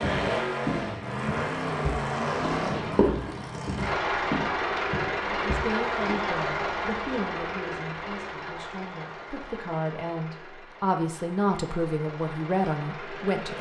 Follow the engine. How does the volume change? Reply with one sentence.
The volume of the engine goes down.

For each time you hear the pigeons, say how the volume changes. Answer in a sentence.
You can't hear the pigeons here.